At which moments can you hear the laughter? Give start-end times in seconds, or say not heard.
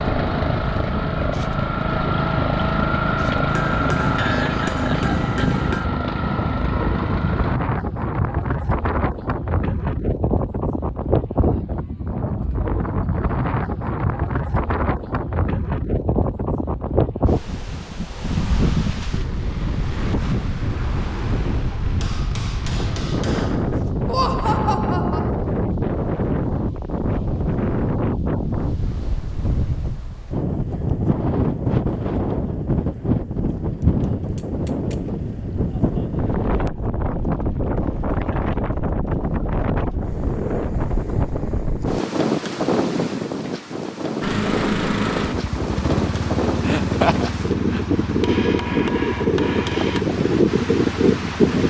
4.2-5.2, 24.1-25.3, 46.6-47.9.